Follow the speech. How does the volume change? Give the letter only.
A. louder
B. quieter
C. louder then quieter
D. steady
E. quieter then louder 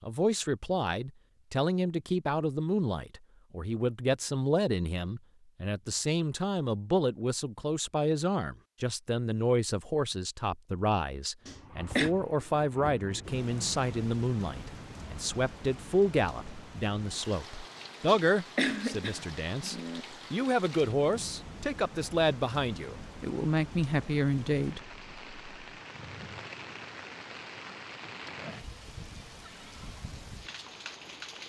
D.